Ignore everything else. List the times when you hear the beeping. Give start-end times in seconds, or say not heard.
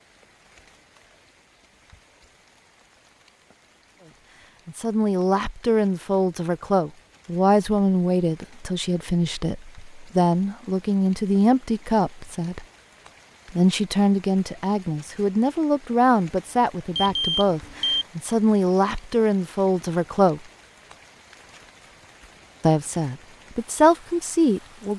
16.9-18.1.